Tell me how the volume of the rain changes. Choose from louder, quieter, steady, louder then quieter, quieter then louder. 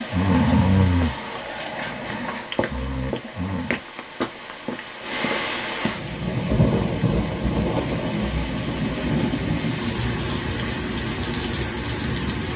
louder.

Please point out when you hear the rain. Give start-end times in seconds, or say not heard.
0.0-12.5.